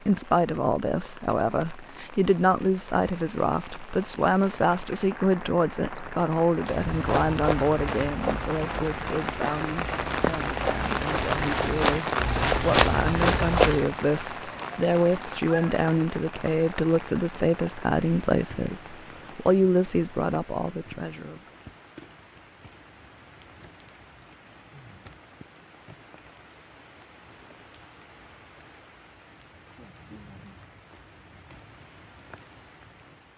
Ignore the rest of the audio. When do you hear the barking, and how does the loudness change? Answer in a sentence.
You can't hear the barking here.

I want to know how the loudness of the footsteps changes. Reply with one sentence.
The volume of the footsteps goes down, then up.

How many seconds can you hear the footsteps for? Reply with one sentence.
You can hear the footsteps for 7 seconds altogether.